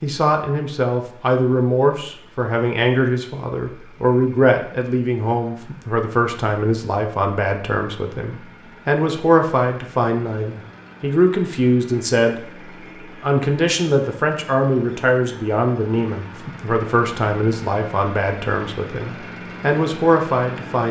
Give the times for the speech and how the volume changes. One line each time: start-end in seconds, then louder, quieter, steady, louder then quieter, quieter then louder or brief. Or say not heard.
0.0-20.8 steady.